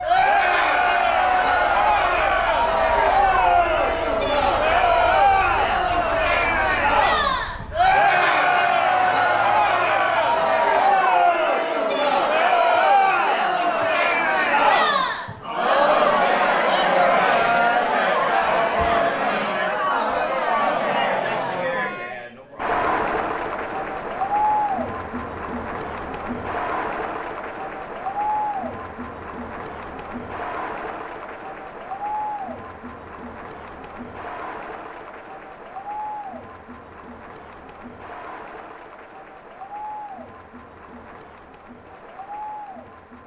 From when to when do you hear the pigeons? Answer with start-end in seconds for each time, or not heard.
not heard.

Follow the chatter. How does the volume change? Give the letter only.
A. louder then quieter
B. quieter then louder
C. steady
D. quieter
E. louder
D.